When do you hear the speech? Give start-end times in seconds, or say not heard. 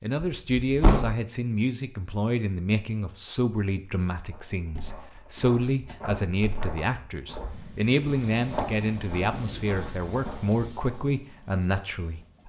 0.0-12.4.